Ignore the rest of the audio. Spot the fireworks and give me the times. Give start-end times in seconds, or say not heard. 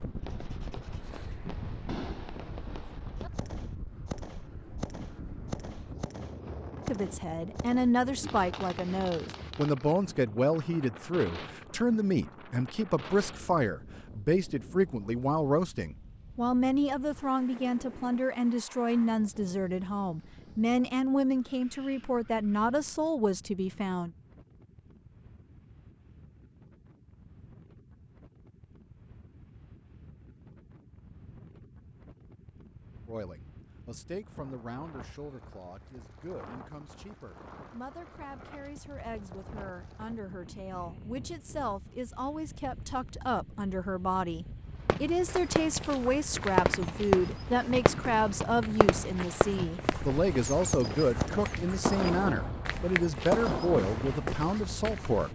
0.0-9.8, 44.9-54.4.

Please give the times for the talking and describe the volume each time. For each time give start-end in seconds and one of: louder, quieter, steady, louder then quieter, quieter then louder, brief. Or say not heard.
6.8-24.1 steady
33.0-55.3 louder.